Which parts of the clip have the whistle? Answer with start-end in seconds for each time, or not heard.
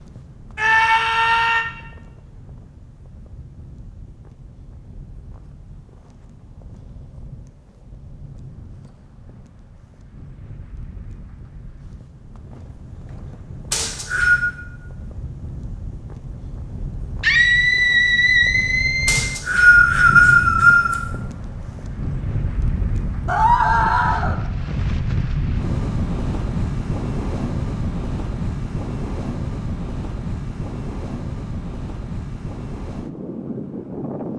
13.7-14.4, 19.1-20.9.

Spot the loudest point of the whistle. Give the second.
20 s.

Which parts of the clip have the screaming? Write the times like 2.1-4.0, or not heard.
0.6-1.6, 17.2-19.2, 23.2-24.4.